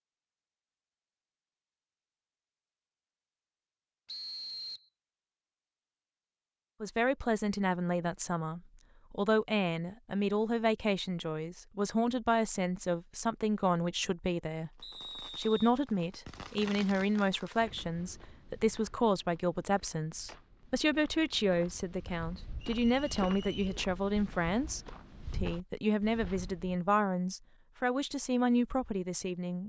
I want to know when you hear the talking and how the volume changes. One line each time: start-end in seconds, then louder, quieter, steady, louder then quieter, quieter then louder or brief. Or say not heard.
6.8-29.6 steady.